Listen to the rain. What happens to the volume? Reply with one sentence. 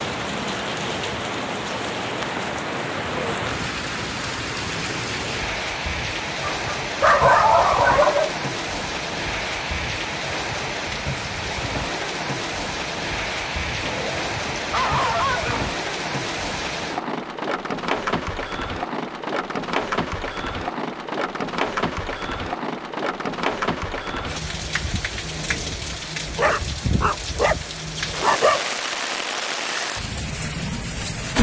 The loudness of the rain stays about the same.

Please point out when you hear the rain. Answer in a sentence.
The rain can be heard from 0.0 to 31.3 s.